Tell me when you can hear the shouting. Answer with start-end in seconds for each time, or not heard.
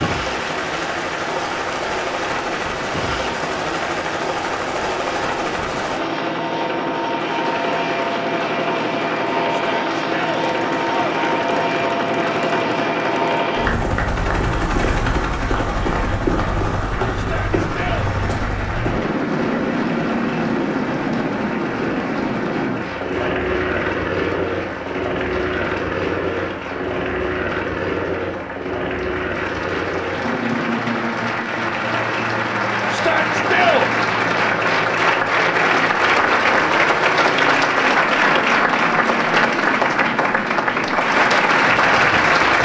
9.5-11.4, 17.1-18.1, 32.9-33.9.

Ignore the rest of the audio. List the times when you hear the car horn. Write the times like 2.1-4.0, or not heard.
not heard.